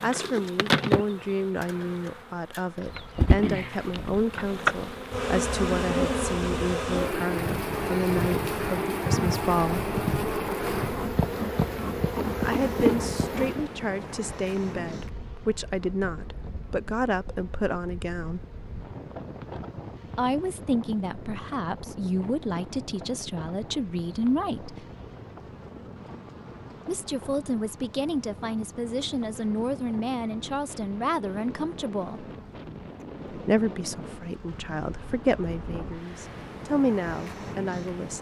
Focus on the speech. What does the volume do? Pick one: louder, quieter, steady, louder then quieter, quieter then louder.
steady.